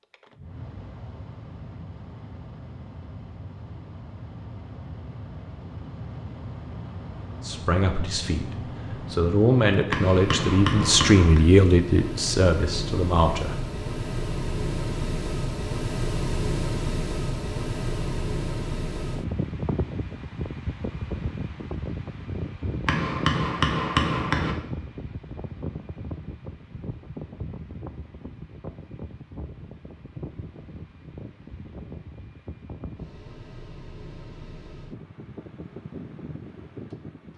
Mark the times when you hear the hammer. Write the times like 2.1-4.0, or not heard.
9.9-11.4, 22.9-24.6.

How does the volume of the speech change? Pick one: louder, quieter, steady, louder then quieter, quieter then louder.
louder then quieter.